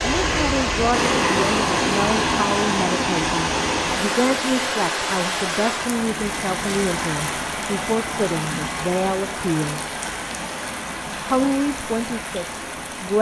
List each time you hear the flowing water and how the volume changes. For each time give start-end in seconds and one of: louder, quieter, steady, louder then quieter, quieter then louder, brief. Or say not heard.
0.0-13.1 quieter.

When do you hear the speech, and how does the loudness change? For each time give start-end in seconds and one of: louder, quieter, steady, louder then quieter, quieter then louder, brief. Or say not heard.
0.0-9.9 steady
11.1-13.1 brief.